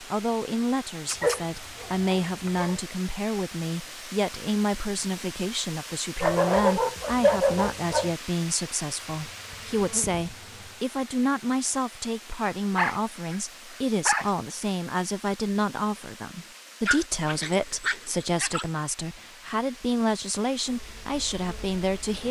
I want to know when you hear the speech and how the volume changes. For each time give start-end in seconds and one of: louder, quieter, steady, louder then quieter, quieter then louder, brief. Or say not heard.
0.0-22.2 steady.